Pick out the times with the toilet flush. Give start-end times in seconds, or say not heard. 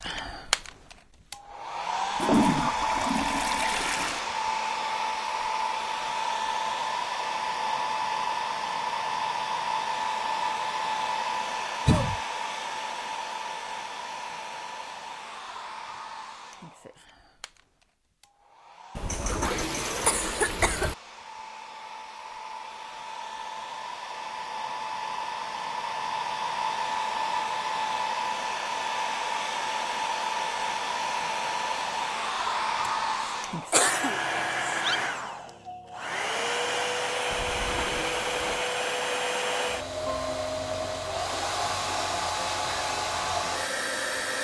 2.1-4.2, 18.9-20.9, 37.3-38.6.